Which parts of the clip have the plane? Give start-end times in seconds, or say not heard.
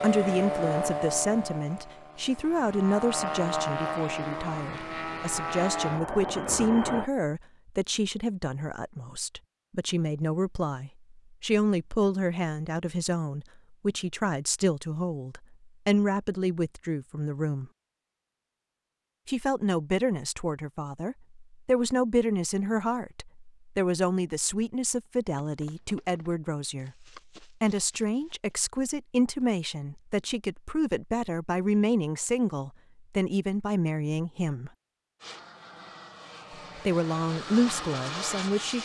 0.0-7.1, 35.2-38.7.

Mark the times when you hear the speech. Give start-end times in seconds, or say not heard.
0.0-17.7, 19.2-34.7, 36.8-38.7.